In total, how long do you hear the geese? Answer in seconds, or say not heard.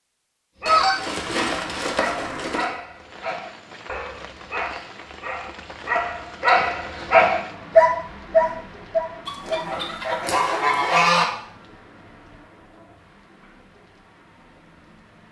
4 s.